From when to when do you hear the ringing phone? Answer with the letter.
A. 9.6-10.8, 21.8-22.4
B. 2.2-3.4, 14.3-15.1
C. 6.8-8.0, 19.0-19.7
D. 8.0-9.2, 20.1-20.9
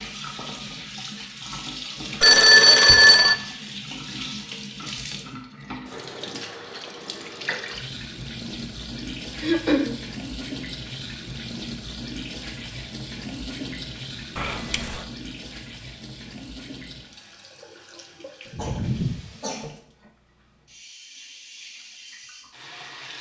B.